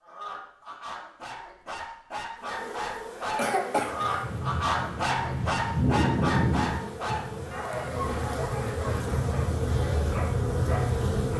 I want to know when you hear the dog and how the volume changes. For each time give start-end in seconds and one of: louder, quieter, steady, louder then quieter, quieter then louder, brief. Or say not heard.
0.0-9.5 louder then quieter
10.1-11.3 brief.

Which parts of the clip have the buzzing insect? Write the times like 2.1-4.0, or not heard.
2.4-11.3.